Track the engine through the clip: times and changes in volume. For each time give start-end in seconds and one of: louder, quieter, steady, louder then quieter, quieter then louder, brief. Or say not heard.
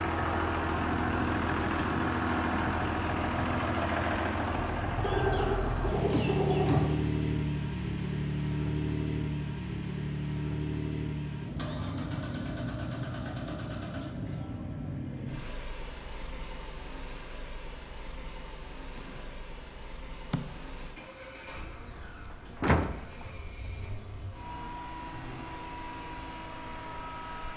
0.0-27.5 quieter.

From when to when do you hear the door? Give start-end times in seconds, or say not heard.
22.6-23.2.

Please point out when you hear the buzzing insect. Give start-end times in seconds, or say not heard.
18.9-27.5.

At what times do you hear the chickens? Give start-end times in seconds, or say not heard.
5.0-7.0.